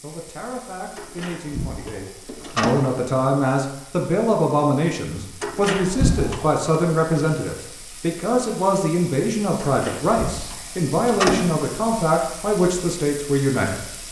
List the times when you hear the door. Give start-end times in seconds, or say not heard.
0.9-2.8, 5.4-6.6, 9.6-11.8.